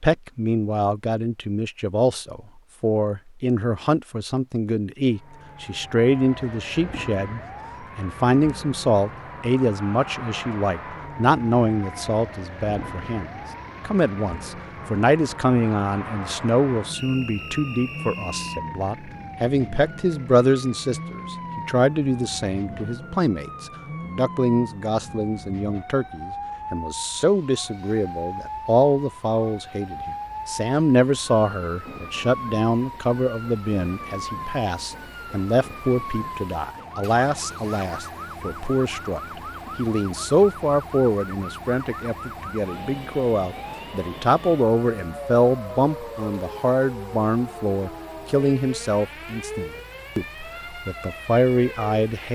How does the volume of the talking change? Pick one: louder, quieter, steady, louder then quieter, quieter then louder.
steady.